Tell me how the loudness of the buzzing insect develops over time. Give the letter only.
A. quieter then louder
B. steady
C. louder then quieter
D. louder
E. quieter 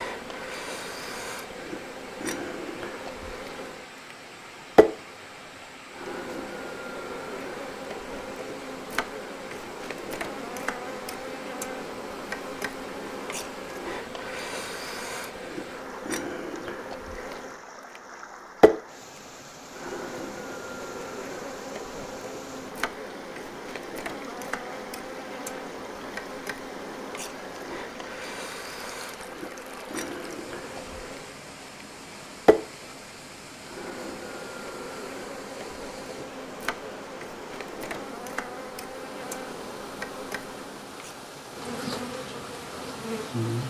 B.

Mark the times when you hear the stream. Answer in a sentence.
You can hear the stream from 0.0 to 43.6 s.